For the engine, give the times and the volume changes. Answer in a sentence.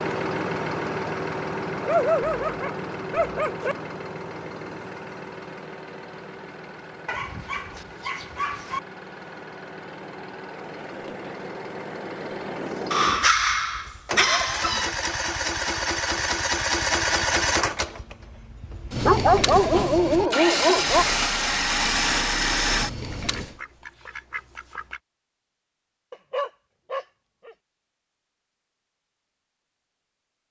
You can hear the engine from 0.0 to 23.6 s, getting quieter then louder.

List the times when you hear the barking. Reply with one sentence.
You can hear the barking from 1.8 to 3.8 s, from 7.0 to 8.8 s, from 12.9 to 14.9 s, from 19.1 to 21.1 s and from 26.1 to 27.6 s.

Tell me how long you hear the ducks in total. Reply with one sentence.
You can hear the ducks for 2 seconds altogether.